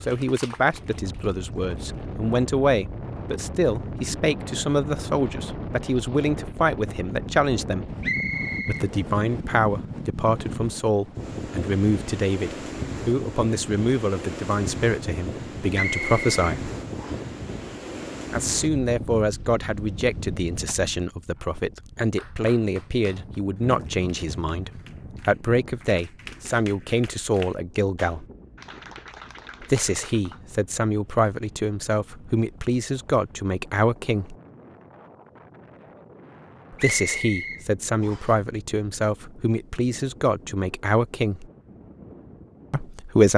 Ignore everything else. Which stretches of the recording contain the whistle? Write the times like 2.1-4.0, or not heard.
8.0-8.8, 15.7-17.2, 36.8-38.4.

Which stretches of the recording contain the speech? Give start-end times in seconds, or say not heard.
0.0-7.8, 8.7-16.7, 18.3-28.2, 29.6-34.4, 36.7-41.5, 42.7-43.3.